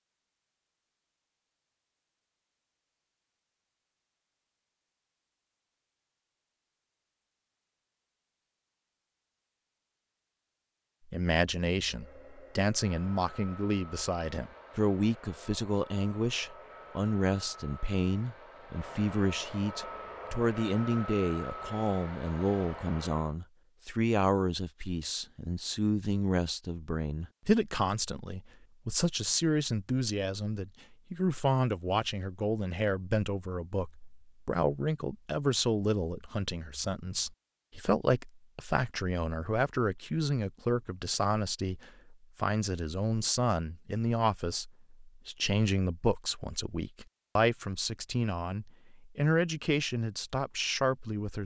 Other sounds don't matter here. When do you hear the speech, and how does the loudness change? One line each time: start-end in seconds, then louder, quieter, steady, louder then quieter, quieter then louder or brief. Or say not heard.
11.1-51.4 steady.